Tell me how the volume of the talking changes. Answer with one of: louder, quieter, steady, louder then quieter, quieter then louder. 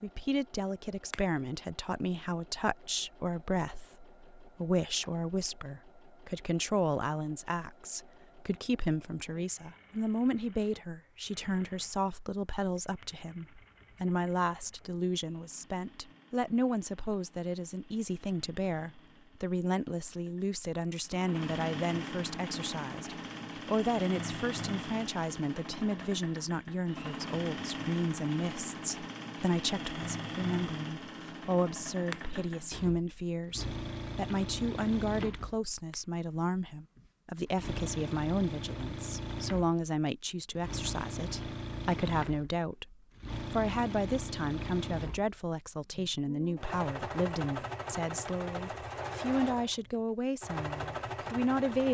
steady.